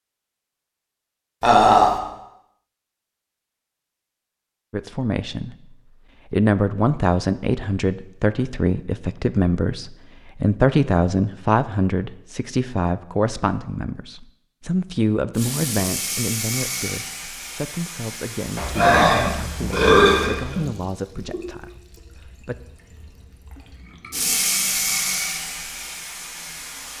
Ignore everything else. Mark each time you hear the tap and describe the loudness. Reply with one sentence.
You can hear the tap from 15.3 to 26.9 s, getting quieter then louder.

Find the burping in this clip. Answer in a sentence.
You can hear the burping from 1.4 to 1.9 s and from 18.6 to 20.7 s.